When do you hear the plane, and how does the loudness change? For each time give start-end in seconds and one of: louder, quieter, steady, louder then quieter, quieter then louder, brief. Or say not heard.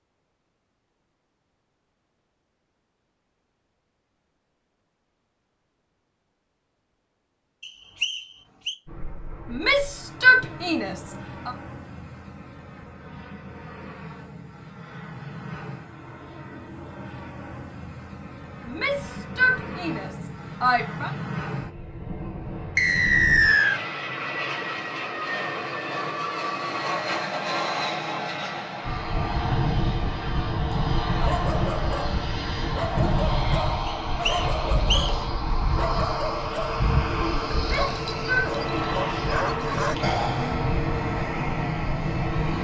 8.8-42.5 louder.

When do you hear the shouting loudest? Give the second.
10 s.